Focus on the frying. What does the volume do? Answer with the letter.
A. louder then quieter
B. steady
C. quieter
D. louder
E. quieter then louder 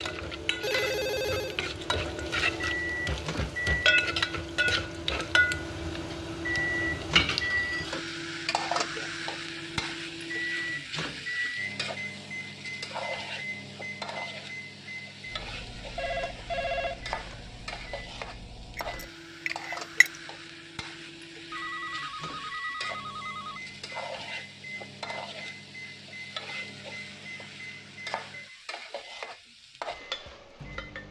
C.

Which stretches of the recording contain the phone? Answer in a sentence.
You can hear the phone from 0.6 to 1.6 s, from 15.9 to 17.4 s and from 21.5 to 23.7 s.